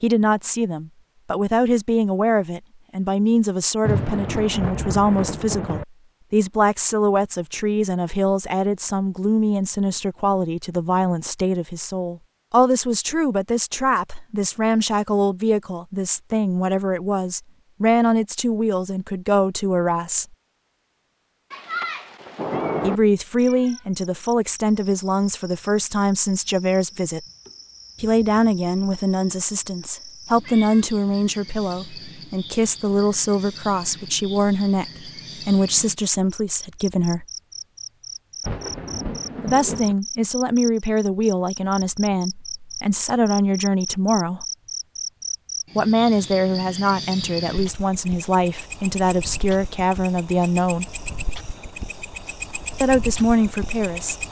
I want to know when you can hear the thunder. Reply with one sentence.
The thunder can be heard from 3.9 to 5.8 s, from 21.5 to 23.0 s and from 38.4 to 40.0 s.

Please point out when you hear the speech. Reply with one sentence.
The speech can be heard from 0.0 to 20.2 s, from 22.8 to 27.2 s, from 28.0 to 37.2 s, from 39.4 to 44.5 s, from 45.8 to 50.9 s and from 52.8 to 54.2 s.